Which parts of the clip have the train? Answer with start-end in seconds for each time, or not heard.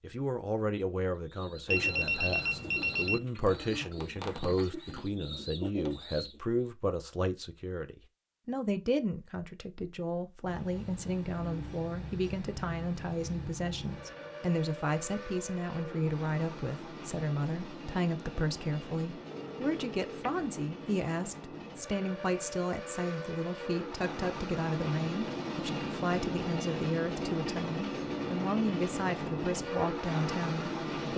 10.4-31.1.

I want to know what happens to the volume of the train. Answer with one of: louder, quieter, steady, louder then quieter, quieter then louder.
louder.